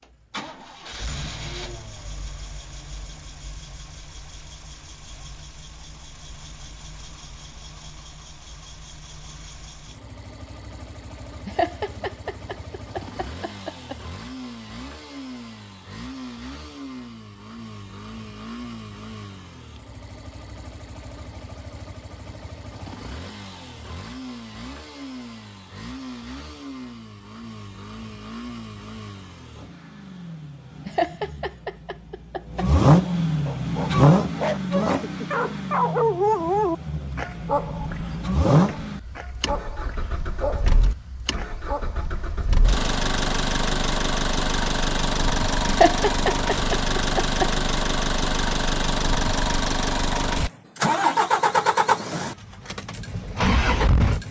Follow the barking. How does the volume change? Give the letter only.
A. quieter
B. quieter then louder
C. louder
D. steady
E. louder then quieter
E.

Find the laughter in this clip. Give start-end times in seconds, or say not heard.
11.4-13.9, 30.9-32.6, 45.6-47.5.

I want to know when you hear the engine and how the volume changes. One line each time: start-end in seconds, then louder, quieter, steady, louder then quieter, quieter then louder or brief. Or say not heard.
0.0-54.2 louder.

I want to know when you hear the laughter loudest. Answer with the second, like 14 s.
46 s.